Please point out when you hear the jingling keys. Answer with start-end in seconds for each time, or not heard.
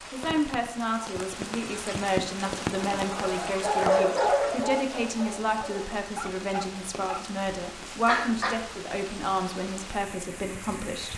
not heard.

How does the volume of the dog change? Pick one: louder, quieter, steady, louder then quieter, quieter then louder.
quieter then louder.